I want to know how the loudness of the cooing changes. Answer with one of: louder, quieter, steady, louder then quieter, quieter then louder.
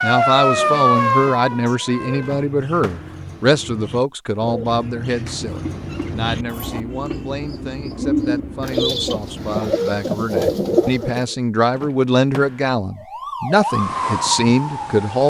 louder.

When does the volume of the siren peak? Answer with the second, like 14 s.
1 s.